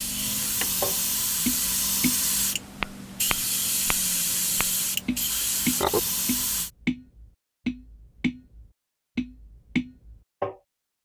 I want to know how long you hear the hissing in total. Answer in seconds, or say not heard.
7 s.